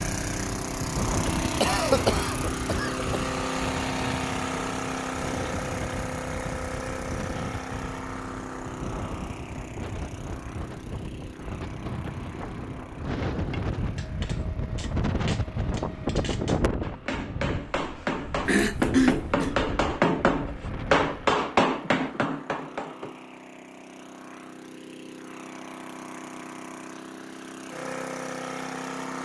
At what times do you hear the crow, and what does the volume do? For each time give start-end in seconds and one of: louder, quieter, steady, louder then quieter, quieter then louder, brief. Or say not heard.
not heard.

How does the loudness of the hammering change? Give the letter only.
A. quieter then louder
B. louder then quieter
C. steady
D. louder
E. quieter
D.